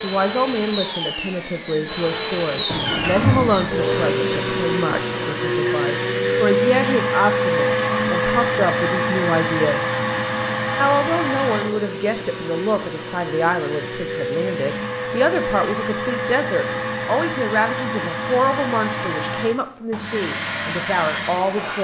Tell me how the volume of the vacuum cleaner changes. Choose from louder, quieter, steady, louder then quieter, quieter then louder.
quieter.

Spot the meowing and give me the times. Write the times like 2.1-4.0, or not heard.
2.6-3.8.